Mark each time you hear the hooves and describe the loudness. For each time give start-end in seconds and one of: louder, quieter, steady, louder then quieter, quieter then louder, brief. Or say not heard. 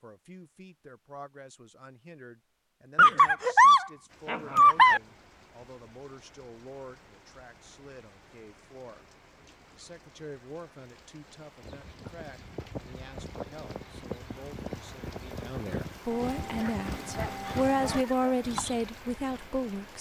11.6-18.8 louder.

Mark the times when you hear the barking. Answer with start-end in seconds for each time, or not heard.
3.0-5.0, 16.6-18.4.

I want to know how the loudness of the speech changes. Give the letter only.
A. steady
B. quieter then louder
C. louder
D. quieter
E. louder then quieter
C.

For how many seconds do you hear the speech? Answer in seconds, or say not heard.
19 s.